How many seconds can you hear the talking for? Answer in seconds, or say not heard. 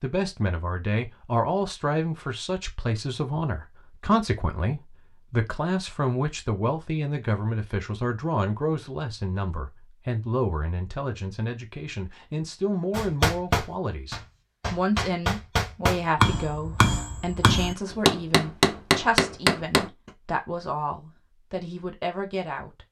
23 s.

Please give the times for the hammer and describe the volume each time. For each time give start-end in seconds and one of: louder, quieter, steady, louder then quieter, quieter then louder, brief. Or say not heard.
12.9-19.9 louder.